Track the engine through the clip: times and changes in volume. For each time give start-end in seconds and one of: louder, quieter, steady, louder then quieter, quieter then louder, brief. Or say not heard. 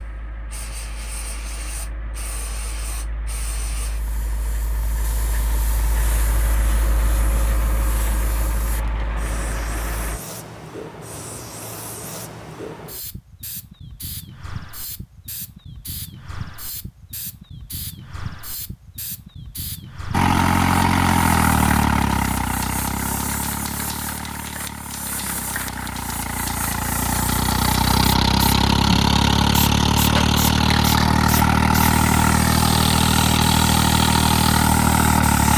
0.0-10.2 louder
20.1-35.5 quieter then louder.